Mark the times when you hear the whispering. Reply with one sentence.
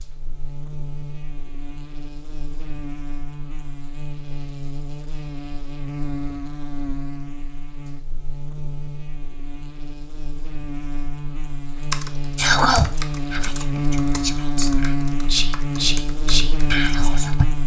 You can hear the whispering from 12.3 to 17.4 s.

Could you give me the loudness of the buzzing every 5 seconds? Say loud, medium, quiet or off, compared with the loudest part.
medium, medium, loud, loud.